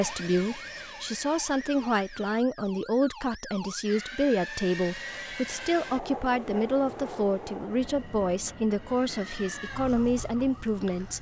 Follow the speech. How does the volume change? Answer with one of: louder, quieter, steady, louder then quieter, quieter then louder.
steady.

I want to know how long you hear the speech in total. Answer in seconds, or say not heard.
11 s.